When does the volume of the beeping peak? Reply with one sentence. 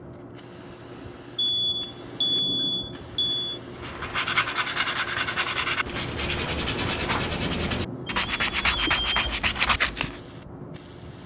The volume of the beeping peaks at 2 seconds.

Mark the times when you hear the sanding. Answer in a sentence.
You can hear the sanding from 3.8 to 10.2 s.